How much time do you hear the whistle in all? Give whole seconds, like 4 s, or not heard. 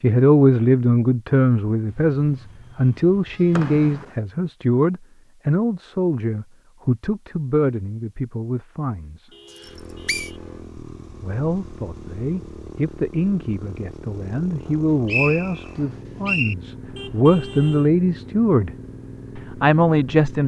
3 s.